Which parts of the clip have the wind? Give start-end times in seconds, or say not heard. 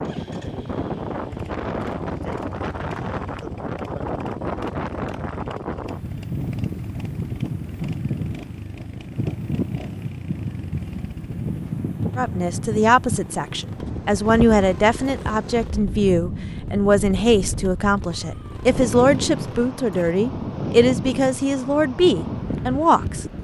0.0-23.3.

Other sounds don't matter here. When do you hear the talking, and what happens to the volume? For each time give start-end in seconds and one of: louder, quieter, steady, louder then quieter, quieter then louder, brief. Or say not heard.
12.2-23.2 steady.